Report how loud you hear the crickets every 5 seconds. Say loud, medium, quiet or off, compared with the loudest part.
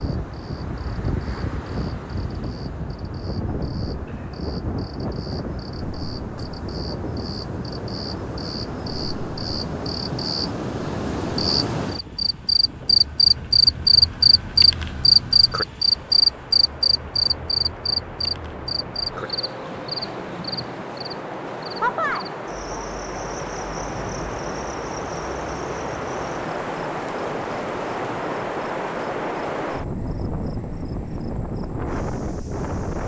quiet, quiet, loud, loud, quiet, quiet, quiet.